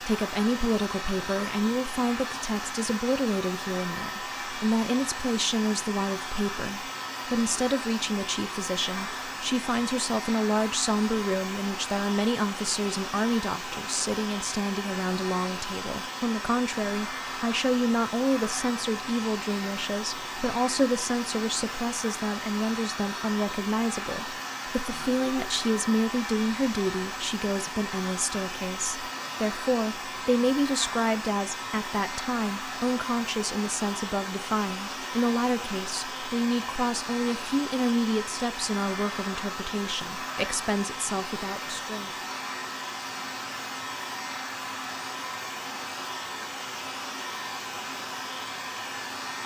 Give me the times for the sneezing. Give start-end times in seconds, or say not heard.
not heard.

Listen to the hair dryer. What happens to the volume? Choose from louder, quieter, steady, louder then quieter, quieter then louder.
steady.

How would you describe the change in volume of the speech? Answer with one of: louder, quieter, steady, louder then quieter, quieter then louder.
steady.